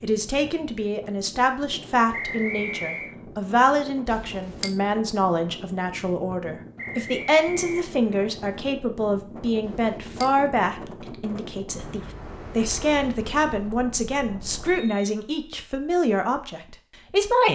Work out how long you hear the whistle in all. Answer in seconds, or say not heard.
3 s.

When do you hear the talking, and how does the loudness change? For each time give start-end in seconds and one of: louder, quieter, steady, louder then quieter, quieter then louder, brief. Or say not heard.
0.0-17.5 steady.